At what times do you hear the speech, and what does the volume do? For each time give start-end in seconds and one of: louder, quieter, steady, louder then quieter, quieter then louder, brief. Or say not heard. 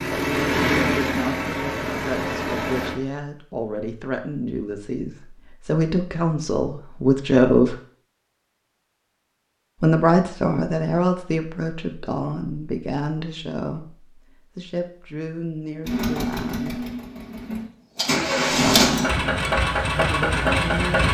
0.1-7.8 louder
9.8-16.9 quieter
18.5-21.0 brief.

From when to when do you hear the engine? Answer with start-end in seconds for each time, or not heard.
0.0-3.0, 15.8-21.0.